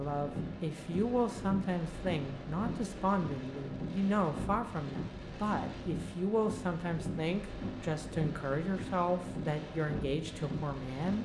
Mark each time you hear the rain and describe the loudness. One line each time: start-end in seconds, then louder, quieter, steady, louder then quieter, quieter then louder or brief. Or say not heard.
0.0-11.2 steady.